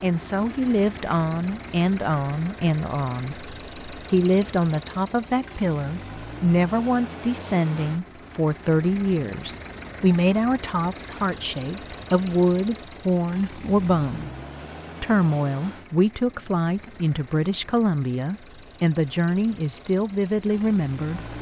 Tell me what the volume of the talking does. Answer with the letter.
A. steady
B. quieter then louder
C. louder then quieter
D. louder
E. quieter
A.